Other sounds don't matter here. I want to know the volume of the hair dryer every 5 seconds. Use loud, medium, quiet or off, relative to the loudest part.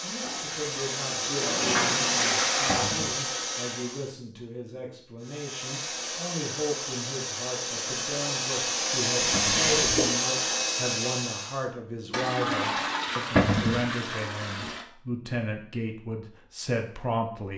loud, loud, loud, off.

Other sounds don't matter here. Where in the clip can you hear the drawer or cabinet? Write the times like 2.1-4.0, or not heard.
2.6-3.1, 9.3-9.8, 13.3-13.8.